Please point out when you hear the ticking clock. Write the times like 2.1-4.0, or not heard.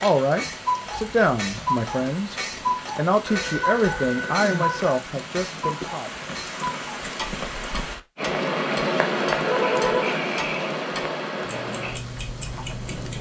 0.0-13.1.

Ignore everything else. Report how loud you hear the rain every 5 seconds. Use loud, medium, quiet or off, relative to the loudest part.
medium, loud, loud.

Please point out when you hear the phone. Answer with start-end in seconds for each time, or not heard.
3.2-5.0, 9.4-10.2.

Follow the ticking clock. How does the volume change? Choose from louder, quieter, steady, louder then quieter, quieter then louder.
quieter.